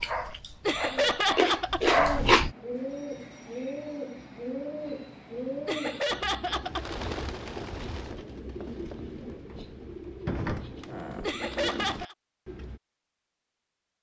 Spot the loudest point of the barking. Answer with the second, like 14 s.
2 s.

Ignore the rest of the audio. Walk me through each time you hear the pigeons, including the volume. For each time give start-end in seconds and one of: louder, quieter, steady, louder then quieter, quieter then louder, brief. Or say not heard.
1.9-12.8 steady.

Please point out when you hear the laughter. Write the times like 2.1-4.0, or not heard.
0.7-1.9, 5.7-6.9, 11.2-12.2.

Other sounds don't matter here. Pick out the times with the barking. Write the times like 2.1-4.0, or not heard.
0.0-2.5.